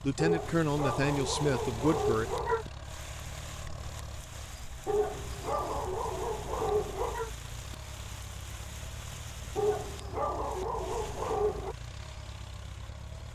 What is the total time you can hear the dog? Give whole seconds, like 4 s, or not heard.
7 s.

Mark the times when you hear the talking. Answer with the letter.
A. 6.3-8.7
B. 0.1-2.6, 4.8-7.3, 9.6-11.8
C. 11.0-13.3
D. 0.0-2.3
D.